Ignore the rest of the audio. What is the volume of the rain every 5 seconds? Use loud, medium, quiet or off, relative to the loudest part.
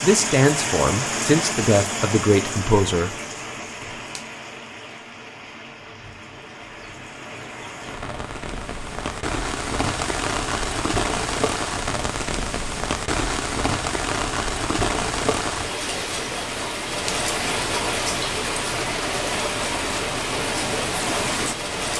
loud, medium, loud, loud, loud.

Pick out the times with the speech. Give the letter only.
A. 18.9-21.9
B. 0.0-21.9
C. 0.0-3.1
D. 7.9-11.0
C.